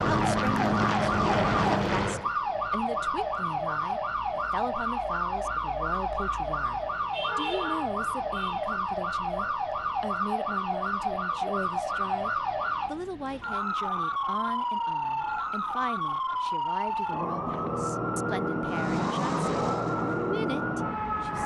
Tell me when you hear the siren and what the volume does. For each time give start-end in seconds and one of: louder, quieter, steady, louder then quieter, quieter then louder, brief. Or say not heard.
0.0-21.4 steady.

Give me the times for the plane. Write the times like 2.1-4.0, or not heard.
0.0-2.3, 18.6-21.4.